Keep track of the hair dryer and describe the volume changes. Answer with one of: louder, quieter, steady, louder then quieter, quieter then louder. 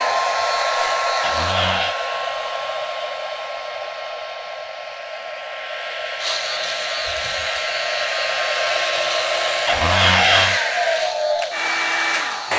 quieter then louder.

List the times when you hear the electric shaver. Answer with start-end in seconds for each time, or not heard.
0.0-1.6, 6.2-12.5.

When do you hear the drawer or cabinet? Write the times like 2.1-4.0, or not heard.
1.2-1.9, 9.7-10.6.